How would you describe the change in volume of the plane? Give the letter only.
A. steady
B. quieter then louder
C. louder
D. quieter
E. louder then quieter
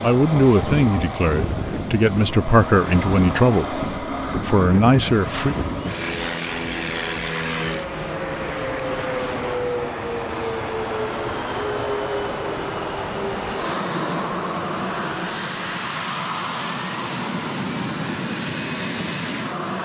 A.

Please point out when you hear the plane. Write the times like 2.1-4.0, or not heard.
0.0-19.7.